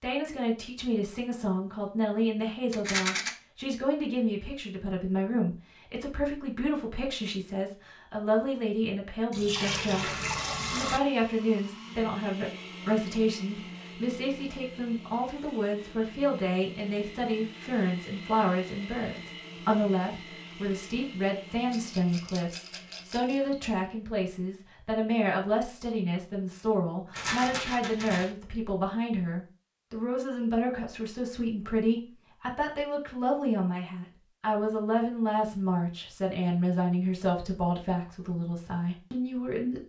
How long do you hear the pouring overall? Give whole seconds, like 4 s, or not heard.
2 s.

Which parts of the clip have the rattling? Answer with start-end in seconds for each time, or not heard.
2.7-3.3, 21.7-23.4, 27.1-28.3.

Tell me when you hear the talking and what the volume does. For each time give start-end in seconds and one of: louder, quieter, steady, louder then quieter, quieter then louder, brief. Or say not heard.
0.0-39.8 steady.